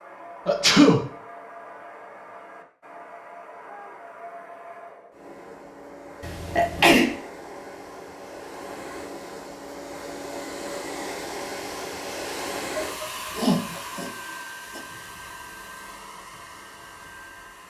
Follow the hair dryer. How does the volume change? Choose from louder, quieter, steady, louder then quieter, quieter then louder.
louder then quieter.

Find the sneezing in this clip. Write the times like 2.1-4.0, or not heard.
0.5-1.0, 6.2-7.1, 12.8-14.1.